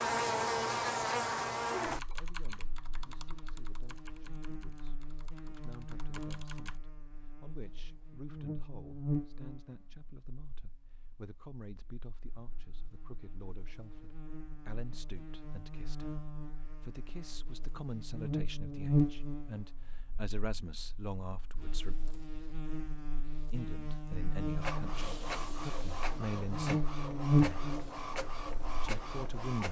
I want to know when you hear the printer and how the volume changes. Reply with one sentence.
The printer can be heard from 24.6 to 29.6 s, at a steady volume.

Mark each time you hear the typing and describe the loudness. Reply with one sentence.
The typing can be heard from 1.8 to 6.8 s, getting quieter then louder.